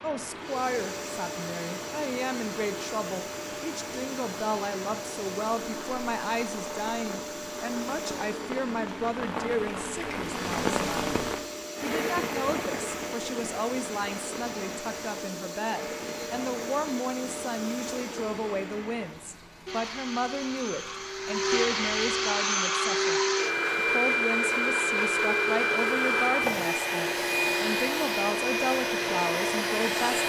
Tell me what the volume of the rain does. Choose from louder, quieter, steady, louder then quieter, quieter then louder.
louder then quieter.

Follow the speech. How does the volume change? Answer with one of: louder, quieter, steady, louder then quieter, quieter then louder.
steady.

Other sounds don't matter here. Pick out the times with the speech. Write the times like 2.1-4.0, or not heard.
0.0-30.2.